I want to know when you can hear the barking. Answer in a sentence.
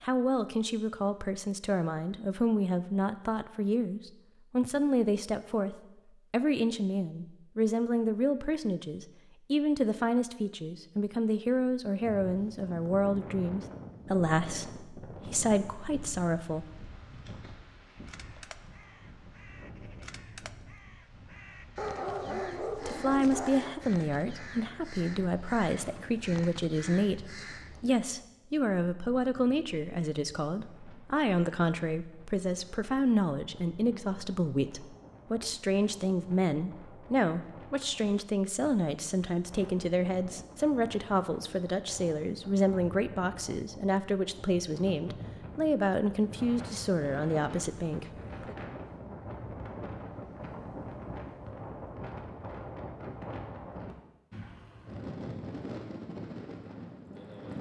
The barking can be heard from 21.8 to 23.8 s.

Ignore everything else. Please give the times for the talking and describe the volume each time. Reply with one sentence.
You can hear the talking from 0.0 to 16.6 s, at a steady volume; and from 22.3 to 48.5 s, at a steady volume.